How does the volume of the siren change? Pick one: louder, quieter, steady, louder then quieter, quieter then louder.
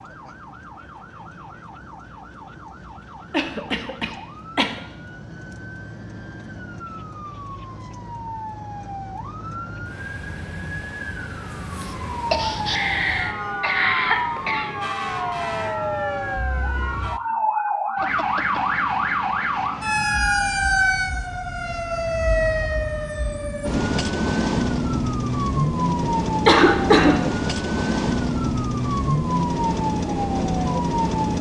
louder.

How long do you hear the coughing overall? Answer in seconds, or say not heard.
5 s.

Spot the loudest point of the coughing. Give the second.
27 s.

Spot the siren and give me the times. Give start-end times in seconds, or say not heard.
0.0-31.3.